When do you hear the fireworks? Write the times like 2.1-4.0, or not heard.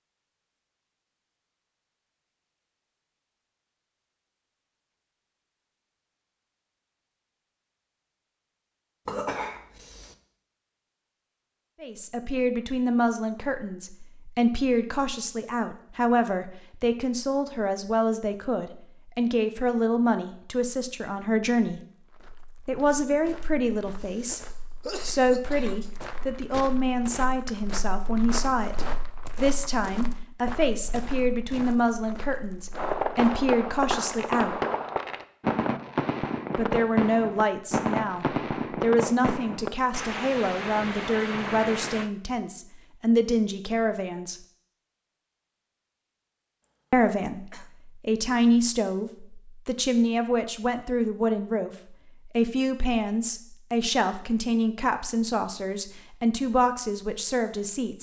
32.7-42.1.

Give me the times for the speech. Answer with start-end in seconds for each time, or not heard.
11.8-21.8, 22.6-34.5, 36.5-44.4, 46.9-57.9.